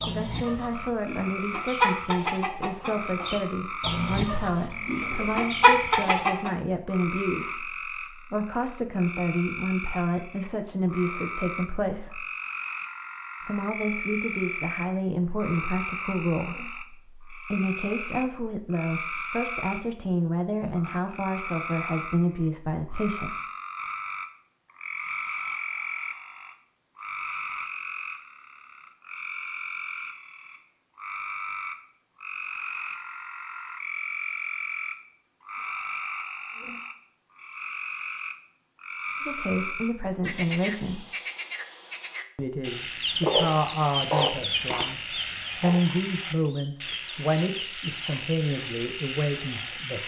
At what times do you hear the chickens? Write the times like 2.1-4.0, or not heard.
0.0-6.5, 43.0-49.9.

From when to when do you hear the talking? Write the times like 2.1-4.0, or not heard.
0.1-12.2, 13.4-23.4, 39.2-41.0, 42.4-50.0.